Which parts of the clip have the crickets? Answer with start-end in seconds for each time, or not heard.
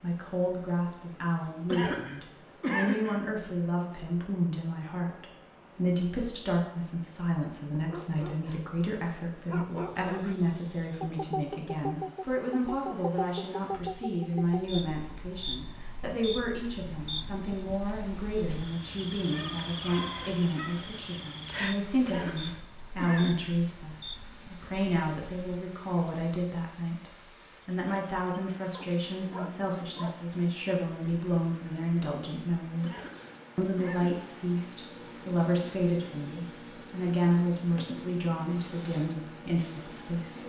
9.7-40.4.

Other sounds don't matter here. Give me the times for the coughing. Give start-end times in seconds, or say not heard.
1.6-3.2, 22.1-23.6, 32.8-34.2.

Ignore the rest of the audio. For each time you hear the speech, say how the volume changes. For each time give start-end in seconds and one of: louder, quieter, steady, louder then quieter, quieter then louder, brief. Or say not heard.
0.0-40.4 steady.